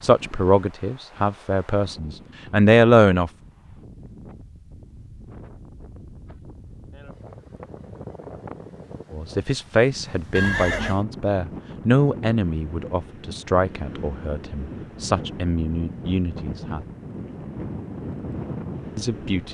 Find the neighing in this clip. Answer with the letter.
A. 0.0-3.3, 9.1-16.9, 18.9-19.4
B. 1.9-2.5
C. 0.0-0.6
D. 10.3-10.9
D.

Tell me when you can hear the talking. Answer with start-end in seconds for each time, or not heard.
0.0-3.3, 9.1-16.9, 18.9-19.4.